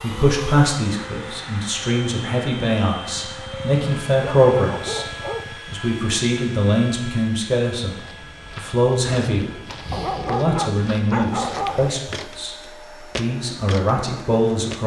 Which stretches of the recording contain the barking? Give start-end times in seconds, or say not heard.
3.1-5.6, 9.9-11.9.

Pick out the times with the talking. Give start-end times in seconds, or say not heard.
0.0-5.0, 5.7-8.0, 8.6-9.5, 10.2-14.8.